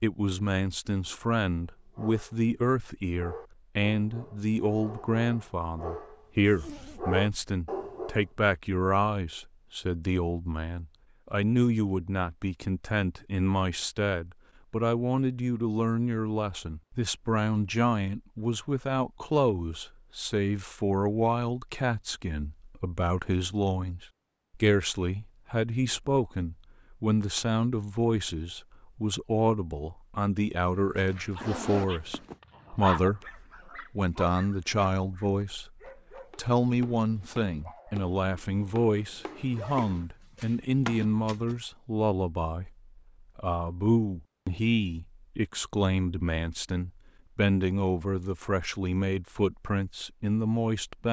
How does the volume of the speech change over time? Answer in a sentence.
The volume of the speech stays about the same.